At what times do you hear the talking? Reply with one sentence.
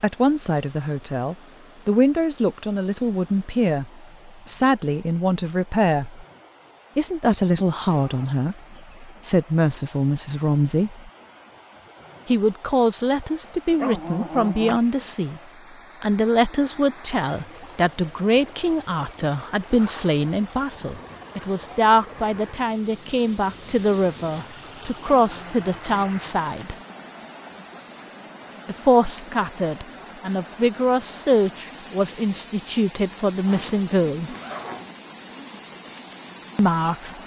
You can hear the talking from 0.0 to 6.2 s, from 7.0 to 11.1 s, from 12.2 to 15.4 s, from 16.0 to 26.8 s, from 28.6 to 34.4 s and from 36.5 to 37.1 s.